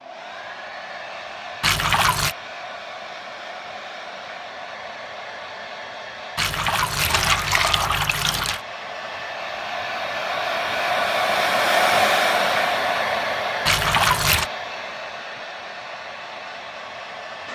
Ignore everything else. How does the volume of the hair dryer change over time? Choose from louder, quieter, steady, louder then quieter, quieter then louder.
louder then quieter.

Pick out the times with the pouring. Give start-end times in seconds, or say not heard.
1.6-2.4, 6.3-8.6, 13.7-14.5.